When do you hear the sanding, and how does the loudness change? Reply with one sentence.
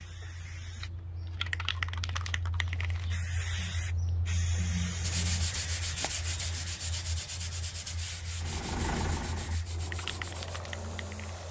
The sanding can be heard from 5.0 to 10.6 s, getting quieter.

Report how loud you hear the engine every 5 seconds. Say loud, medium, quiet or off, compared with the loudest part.
off, loud, medium.